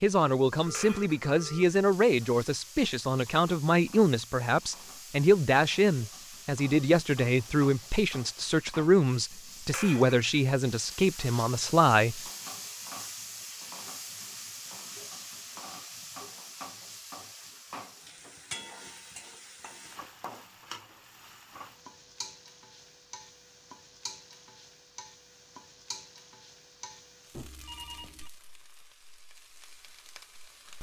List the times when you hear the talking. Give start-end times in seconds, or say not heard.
0.0-12.2.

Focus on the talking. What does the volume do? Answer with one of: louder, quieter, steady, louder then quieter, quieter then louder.
steady.